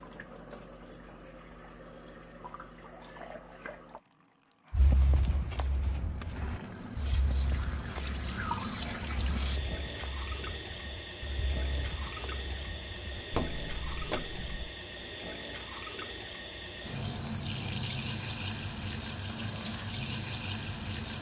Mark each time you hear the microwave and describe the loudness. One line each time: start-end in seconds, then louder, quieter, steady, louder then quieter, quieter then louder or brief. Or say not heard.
not heard.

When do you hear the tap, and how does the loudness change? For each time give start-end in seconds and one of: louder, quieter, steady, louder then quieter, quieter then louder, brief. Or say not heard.
0.0-21.1 louder.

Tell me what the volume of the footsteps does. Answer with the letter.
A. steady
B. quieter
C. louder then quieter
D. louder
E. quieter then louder
E.